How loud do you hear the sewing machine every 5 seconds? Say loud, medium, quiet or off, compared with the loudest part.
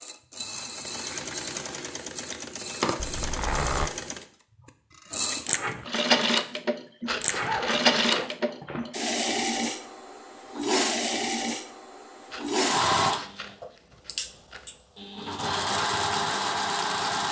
medium, loud, loud, loud.